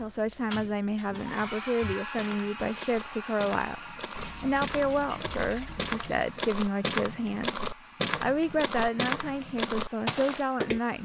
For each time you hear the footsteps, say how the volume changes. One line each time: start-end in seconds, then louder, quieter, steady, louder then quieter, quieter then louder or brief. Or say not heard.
0.5-10.8 louder.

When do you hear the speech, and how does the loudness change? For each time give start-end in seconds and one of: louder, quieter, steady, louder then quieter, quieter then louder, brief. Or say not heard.
0.0-7.6 steady
8.2-11.0 brief.